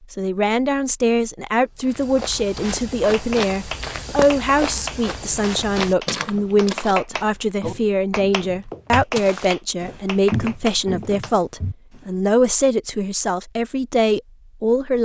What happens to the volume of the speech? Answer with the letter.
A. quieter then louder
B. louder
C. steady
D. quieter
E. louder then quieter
C.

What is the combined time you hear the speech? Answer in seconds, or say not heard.
15 s.